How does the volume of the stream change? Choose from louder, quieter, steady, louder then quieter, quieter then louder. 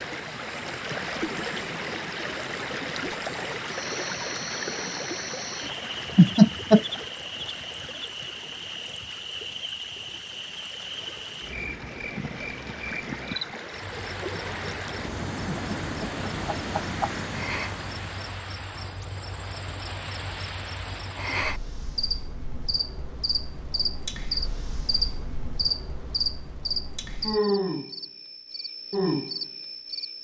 quieter then louder.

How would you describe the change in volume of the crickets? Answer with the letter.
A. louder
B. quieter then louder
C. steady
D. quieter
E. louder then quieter
A.